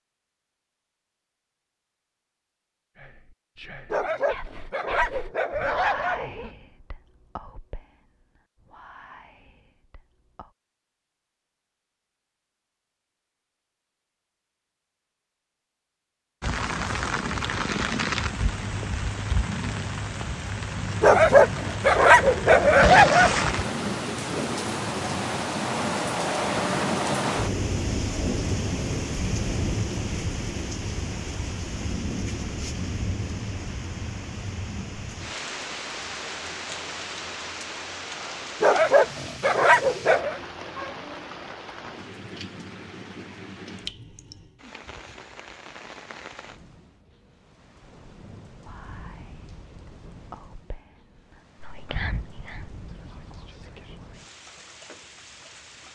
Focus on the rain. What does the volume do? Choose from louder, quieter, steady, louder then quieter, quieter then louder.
quieter.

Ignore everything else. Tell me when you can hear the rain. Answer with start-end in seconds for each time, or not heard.
16.4-55.9.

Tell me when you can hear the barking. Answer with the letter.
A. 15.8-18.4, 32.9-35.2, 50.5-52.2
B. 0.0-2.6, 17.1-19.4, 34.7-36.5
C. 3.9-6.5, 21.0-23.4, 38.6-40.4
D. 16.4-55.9
C.